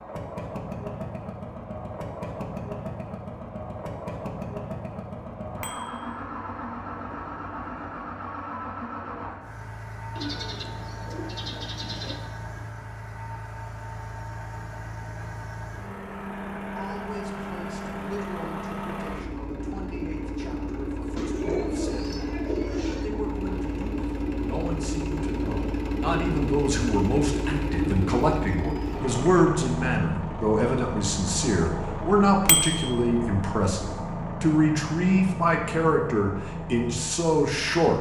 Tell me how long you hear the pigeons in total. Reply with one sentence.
The pigeons can be heard for 4 seconds in total.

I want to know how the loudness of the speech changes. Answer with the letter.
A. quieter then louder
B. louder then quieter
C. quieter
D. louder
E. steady
D.